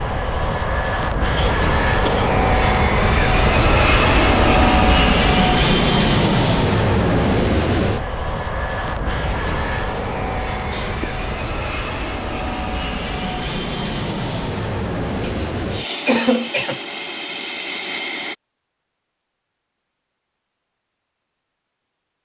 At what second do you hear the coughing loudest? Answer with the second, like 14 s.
16 s.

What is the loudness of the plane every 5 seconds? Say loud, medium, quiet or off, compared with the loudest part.
loud, loud, medium, medium, off.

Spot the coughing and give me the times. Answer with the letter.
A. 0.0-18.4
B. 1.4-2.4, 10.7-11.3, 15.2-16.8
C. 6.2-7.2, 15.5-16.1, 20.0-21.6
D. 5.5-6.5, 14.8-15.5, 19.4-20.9
B.